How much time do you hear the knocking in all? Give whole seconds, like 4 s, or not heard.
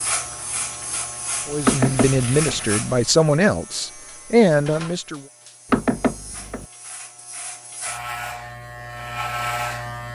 2 s.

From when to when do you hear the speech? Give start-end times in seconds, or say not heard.
1.4-5.2.